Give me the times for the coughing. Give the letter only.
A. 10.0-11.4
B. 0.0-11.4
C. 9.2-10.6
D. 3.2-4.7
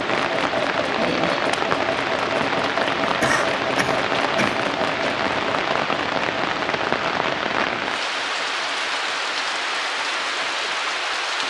D.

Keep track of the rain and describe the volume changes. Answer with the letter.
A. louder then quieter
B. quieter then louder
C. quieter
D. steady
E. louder
D.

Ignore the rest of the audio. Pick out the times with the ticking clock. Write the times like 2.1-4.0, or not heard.
not heard.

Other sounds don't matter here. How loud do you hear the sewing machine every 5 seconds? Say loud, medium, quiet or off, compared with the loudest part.
loud, medium, quiet.